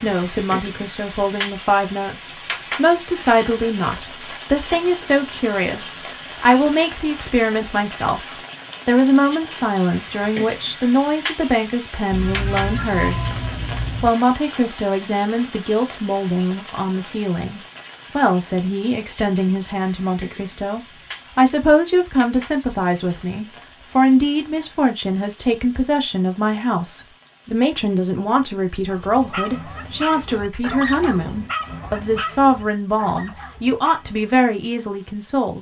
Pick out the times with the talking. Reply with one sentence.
The talking can be heard from 0.0 to 13.2 s and from 14.0 to 35.5 s.